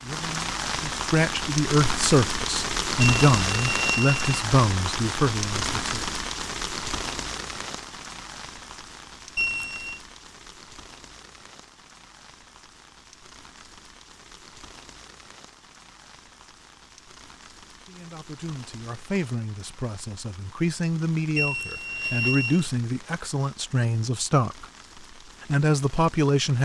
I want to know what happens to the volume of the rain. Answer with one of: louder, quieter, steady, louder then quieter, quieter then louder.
quieter.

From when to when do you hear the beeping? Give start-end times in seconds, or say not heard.
3.0-4.3, 9.3-10.0, 21.4-22.6.